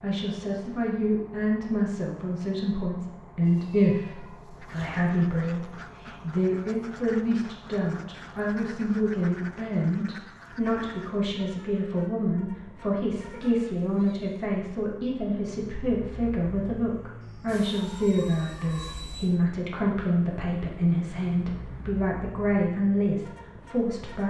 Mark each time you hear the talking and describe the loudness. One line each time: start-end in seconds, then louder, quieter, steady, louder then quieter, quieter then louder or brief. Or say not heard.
0.0-24.2 steady.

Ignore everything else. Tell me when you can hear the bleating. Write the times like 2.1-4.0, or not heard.
not heard.